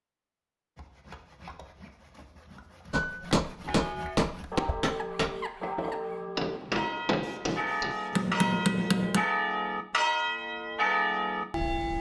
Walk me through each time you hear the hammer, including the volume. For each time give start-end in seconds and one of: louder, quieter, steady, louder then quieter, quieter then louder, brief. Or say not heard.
2.9-9.2 quieter then louder.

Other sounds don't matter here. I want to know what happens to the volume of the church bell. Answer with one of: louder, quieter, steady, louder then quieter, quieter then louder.
louder.